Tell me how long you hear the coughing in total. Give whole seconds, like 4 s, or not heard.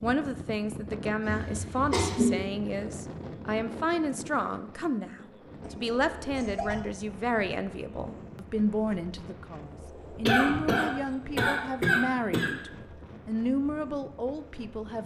5 s.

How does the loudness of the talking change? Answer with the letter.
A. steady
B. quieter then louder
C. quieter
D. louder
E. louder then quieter
A.